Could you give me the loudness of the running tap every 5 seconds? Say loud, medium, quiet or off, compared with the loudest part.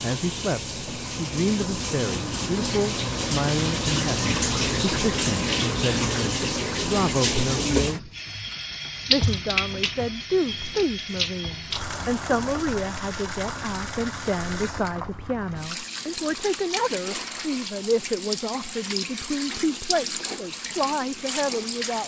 loud, loud, medium, medium, medium.